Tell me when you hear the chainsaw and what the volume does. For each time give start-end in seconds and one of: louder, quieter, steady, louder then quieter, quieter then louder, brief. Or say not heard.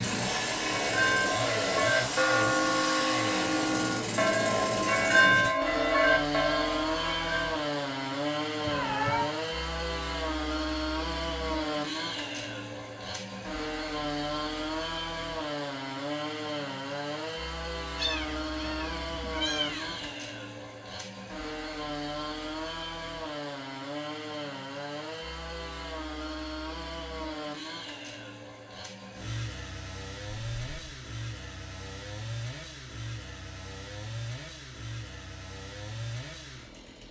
0.0-37.0 quieter.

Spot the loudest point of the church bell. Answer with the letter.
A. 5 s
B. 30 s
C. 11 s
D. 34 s
A.